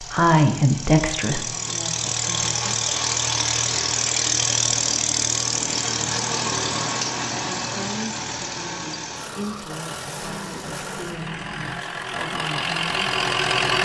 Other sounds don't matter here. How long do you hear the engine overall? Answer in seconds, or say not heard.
14 s.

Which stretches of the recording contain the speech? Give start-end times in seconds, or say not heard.
0.0-2.8, 7.3-13.1.